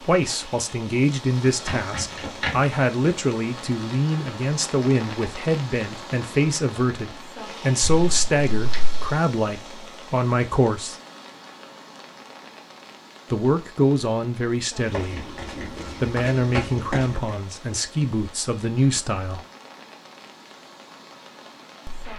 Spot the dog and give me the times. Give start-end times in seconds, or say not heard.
not heard.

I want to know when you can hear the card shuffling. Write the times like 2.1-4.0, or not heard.
1.4-2.6, 7.8-9.2, 14.9-17.4.